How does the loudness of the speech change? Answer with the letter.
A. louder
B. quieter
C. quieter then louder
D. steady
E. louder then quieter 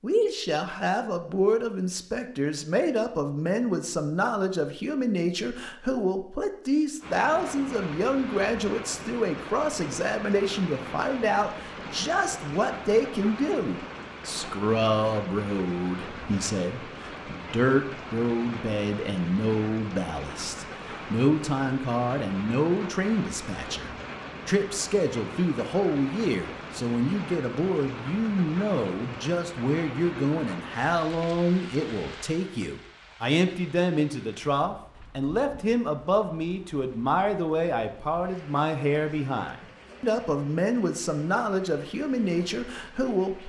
D.